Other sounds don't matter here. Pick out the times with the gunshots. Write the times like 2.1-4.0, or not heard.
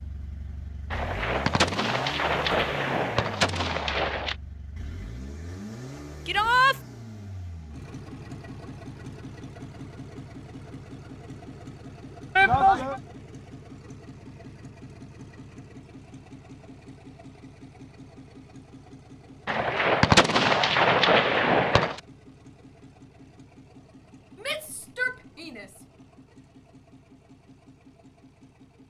0.9-4.3, 19.4-22.0.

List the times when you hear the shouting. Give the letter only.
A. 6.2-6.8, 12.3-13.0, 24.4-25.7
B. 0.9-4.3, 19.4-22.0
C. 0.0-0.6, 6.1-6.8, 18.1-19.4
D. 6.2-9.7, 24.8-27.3
A.